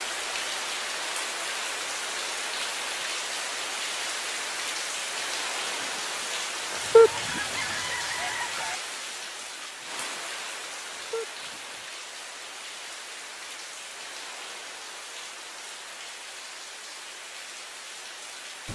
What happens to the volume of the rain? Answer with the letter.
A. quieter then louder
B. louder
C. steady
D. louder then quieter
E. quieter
E.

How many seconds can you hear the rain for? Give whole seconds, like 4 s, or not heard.
19 s.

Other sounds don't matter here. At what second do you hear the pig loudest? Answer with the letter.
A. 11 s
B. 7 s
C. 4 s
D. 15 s
B.